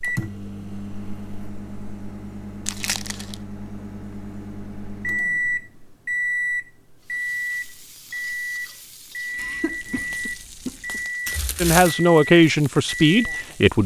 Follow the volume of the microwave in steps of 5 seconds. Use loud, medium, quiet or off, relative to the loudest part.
medium, loud, loud.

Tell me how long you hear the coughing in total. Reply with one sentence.
You can hear the coughing for 2 seconds altogether.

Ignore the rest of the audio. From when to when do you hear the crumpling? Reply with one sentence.
The crumpling can be heard from 2.6 to 3.4 s and from 11.2 to 11.9 s.